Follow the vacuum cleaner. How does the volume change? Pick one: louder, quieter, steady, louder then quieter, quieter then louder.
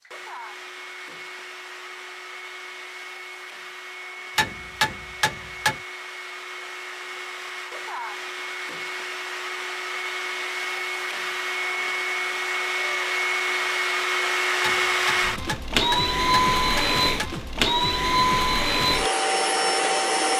louder.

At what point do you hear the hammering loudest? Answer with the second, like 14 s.
5 s.